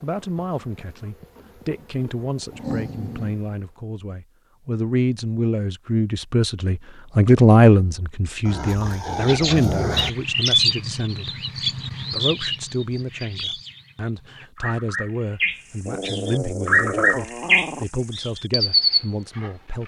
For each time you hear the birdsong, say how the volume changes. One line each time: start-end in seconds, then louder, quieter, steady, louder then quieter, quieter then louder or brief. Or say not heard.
9.2-19.8 quieter then louder.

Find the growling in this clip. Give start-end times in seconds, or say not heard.
2.5-3.4, 8.4-10.1, 15.8-17.9.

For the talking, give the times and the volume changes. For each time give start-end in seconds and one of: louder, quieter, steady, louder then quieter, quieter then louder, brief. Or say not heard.
0.0-19.8 louder then quieter.